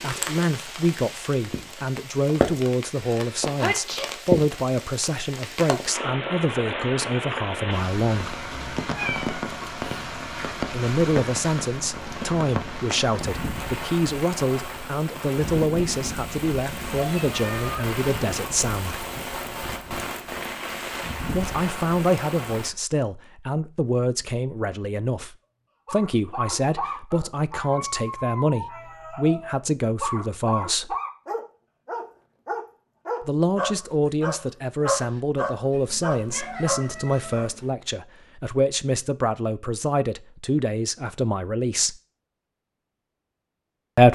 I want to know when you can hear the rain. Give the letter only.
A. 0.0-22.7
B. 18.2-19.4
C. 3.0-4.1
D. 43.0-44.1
A.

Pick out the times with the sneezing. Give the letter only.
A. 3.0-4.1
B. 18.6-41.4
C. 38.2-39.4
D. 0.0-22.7
A.